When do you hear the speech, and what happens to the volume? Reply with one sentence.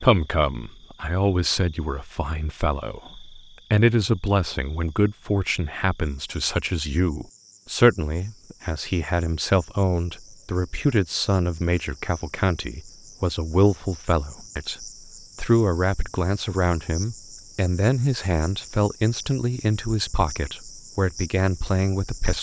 You can hear the speech from 0.0 to 22.3 s, at a steady volume.